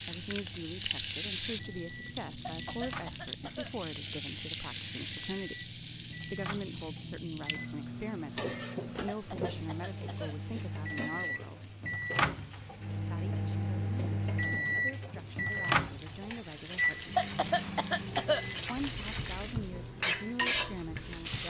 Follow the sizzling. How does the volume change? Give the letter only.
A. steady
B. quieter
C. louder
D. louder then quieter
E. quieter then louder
E.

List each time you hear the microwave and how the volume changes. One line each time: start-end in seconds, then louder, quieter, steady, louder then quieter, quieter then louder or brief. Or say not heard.
0.0-21.4 louder then quieter.